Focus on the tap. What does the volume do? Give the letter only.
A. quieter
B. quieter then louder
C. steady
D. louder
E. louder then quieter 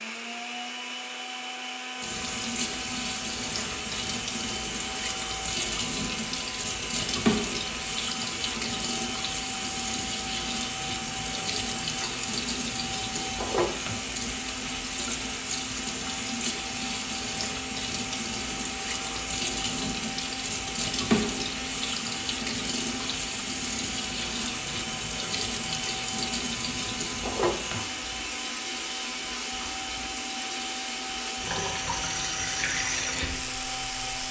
C.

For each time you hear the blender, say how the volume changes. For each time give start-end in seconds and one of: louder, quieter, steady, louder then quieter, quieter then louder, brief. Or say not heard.
0.0-34.2 steady.